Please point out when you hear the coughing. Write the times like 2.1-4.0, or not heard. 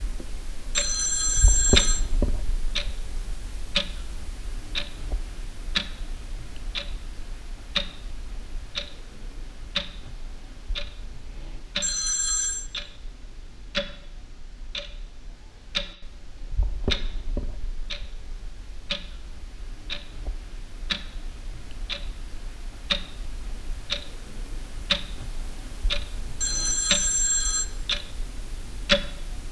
not heard.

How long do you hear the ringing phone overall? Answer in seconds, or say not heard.
3 s.